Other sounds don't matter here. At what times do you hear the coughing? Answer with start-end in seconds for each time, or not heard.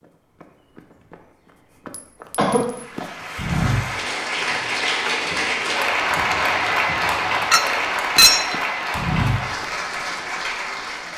2.4-3.0.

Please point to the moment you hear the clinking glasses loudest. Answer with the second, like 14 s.
8 s.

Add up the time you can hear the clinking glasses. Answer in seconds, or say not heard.
2 s.